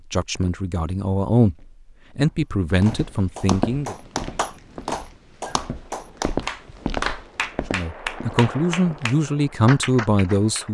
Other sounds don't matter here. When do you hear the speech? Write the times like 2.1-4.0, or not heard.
0.1-1.6, 2.1-4.0, 7.7-10.6.